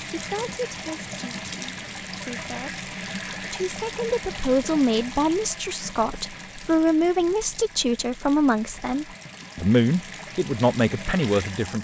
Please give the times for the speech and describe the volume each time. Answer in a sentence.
The speech can be heard from 0.1 to 11.7 s, getting louder.